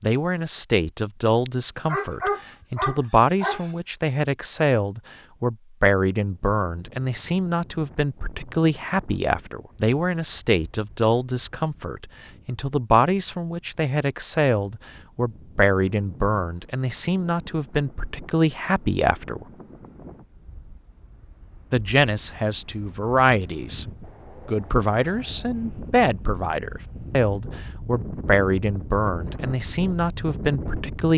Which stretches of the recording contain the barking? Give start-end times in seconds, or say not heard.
1.4-3.8.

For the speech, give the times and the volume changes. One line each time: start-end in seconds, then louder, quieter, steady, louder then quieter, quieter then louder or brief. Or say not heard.
0.0-19.4 steady
21.7-23.9 brief
24.4-31.1 steady.